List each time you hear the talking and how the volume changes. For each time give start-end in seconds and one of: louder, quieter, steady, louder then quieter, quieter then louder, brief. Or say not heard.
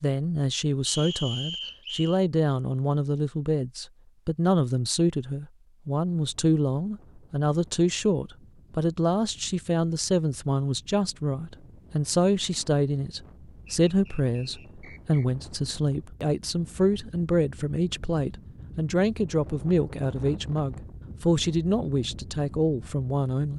0.0-23.5 steady.